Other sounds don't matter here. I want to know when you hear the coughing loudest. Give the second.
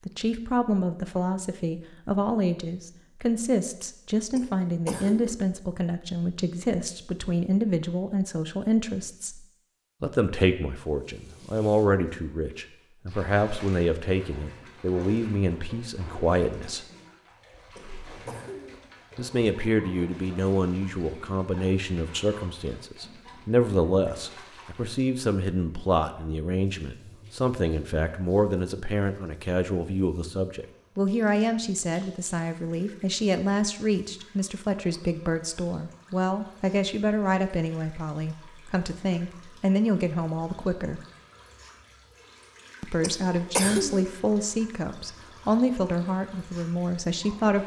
44 s.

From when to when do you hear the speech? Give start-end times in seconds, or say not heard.
0.1-9.4, 10.0-16.9, 19.1-41.0, 42.8-47.6.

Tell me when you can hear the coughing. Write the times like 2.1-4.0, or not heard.
4.3-5.3, 17.8-18.8, 43.0-44.0.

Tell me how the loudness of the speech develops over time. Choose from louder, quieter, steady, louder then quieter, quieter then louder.
steady.